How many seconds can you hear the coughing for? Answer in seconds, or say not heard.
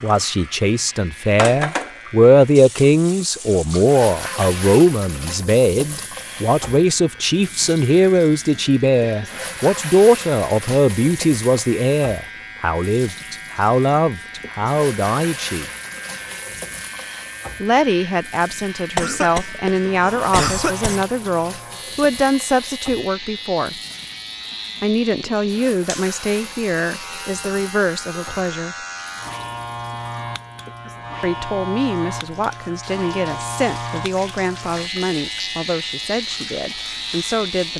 2 s.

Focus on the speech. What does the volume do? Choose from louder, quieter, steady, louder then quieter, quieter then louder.
quieter.